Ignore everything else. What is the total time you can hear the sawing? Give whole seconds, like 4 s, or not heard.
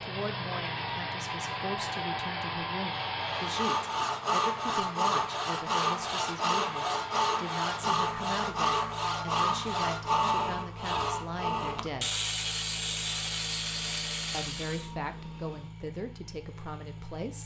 12 s.